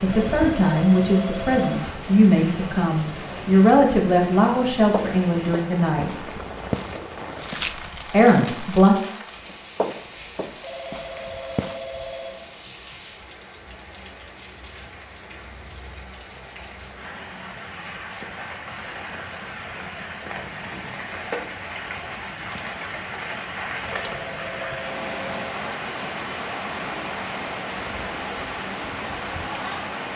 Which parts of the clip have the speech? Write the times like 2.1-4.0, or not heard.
0.0-6.2, 8.1-8.9.